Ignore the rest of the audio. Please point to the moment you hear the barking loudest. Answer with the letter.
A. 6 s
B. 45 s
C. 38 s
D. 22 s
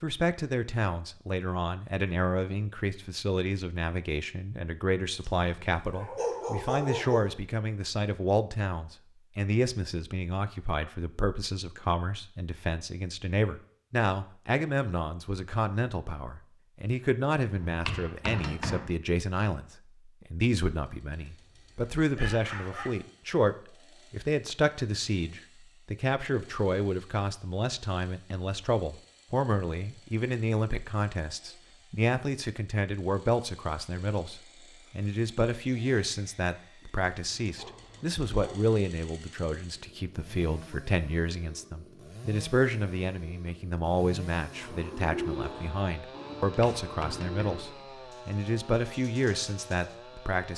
A.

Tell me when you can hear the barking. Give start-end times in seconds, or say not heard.
5.1-7.3, 21.4-22.9, 37.1-38.7.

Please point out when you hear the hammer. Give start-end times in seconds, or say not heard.
17.6-18.9, 46.5-47.8.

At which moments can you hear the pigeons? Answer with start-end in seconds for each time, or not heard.
44.5-50.0.